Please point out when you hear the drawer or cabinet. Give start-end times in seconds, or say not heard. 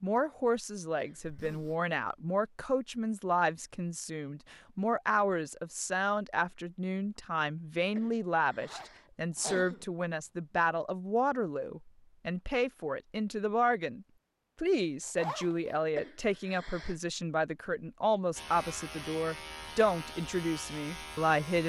not heard.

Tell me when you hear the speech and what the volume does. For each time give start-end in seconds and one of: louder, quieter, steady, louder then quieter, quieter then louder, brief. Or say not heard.
0.0-21.6 steady.